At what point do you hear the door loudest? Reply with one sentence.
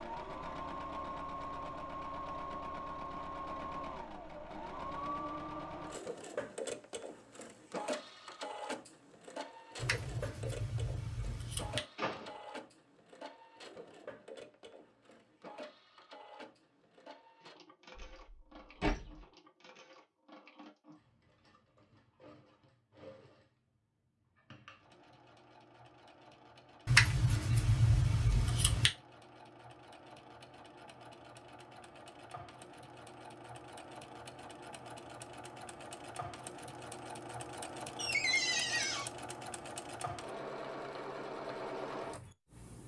The loudest moment of the door is at 38 seconds.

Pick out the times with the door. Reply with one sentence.
You can hear the door from 11.9 to 12.3 s, from 17.9 to 19.1 s and from 38.0 to 39.1 s.